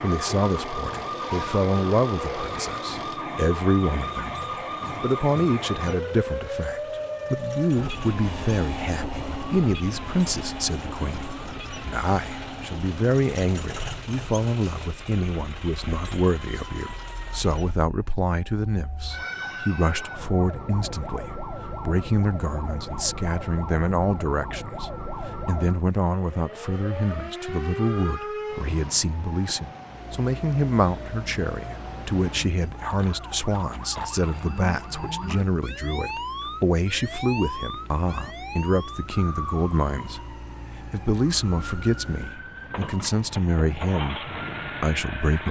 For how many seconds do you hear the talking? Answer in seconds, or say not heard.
45 s.